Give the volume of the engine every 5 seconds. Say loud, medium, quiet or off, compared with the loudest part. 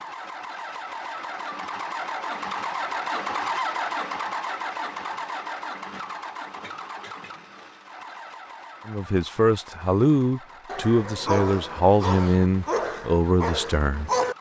loud, medium, quiet.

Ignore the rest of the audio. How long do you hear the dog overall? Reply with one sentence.
The dog can be heard for 4 seconds in total.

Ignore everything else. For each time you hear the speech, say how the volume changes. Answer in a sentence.
The speech can be heard from 8.8 to 14.1 s, at a steady volume.